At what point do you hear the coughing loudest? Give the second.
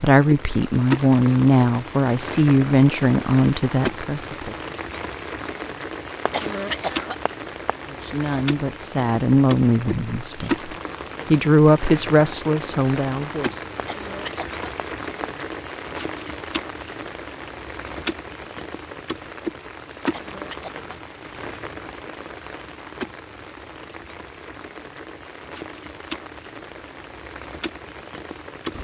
7 s.